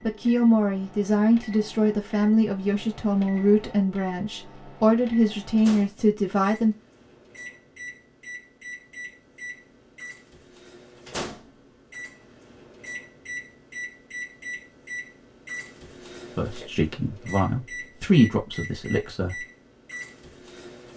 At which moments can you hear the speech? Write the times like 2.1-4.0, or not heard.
0.0-6.8, 16.4-19.4.